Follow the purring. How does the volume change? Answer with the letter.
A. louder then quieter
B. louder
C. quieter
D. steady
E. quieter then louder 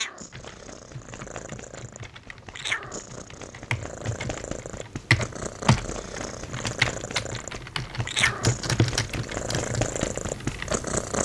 B.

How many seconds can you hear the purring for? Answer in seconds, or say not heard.
11 s.